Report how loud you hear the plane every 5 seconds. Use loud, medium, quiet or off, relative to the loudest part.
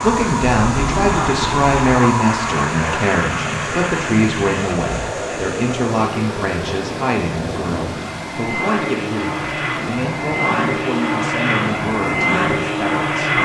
loud, medium, loud.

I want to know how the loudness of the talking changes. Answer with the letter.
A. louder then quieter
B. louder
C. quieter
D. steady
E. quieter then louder
C.